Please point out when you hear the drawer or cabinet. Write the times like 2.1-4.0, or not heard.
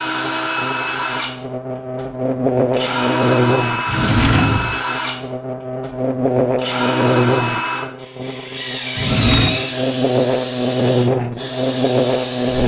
3.9-4.8, 8.9-9.6.